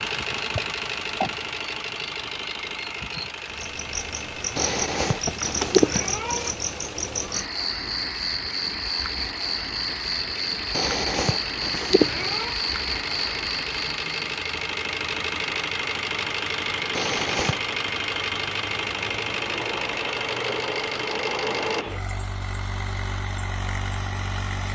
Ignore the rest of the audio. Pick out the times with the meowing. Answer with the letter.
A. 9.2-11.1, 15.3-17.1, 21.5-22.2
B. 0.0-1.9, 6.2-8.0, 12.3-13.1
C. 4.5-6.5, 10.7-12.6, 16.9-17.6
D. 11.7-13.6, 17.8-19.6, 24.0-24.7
C.